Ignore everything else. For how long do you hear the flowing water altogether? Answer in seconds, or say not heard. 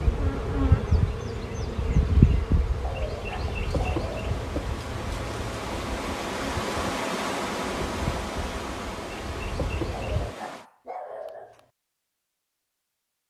11 s.